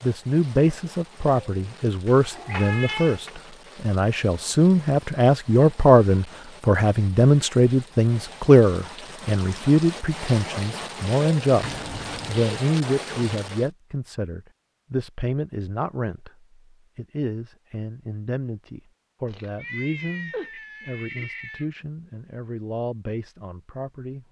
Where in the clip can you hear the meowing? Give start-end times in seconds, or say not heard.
2.0-3.3, 11.6-12.6, 19.2-21.6.